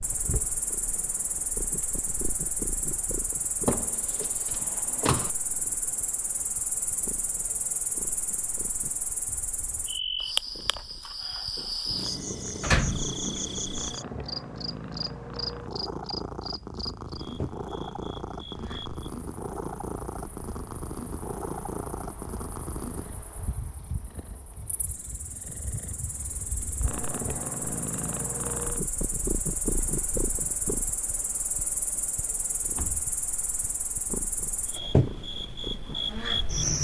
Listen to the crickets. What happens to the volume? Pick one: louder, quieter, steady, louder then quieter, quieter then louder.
quieter then louder.